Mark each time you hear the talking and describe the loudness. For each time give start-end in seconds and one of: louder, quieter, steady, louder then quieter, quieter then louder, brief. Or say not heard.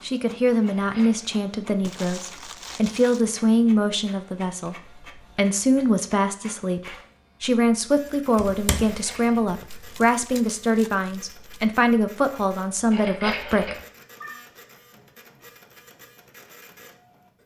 0.0-13.8 steady.